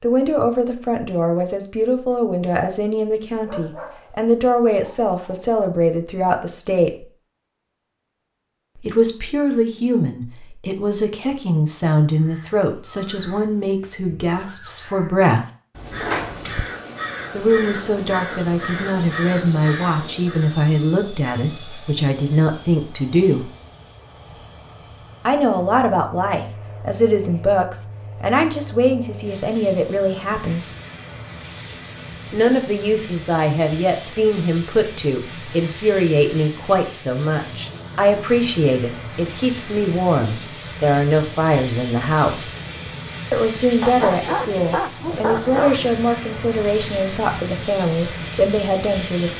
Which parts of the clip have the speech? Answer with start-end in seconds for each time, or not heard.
0.0-7.0, 8.8-15.4, 17.3-23.5, 25.2-30.7, 32.3-42.5, 43.3-49.3.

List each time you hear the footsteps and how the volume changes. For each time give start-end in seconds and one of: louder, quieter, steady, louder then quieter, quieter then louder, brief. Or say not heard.
not heard.